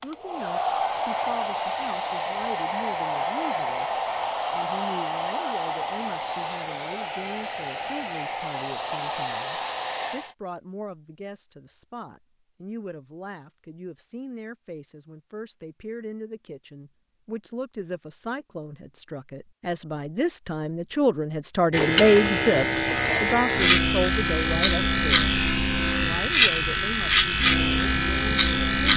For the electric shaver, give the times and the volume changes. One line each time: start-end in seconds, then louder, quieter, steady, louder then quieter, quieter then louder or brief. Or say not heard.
21.7-28.9 steady.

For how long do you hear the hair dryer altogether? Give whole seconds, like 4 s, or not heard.
10 s.